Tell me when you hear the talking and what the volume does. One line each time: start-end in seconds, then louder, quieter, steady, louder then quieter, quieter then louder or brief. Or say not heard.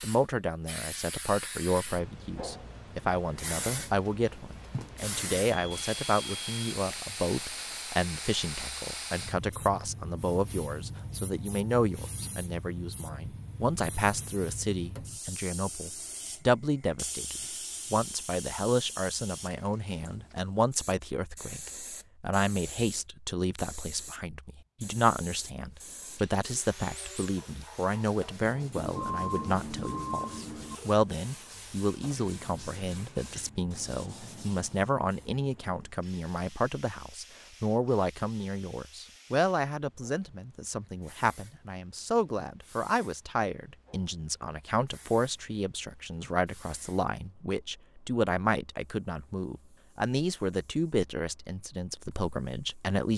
0.0-53.1 steady.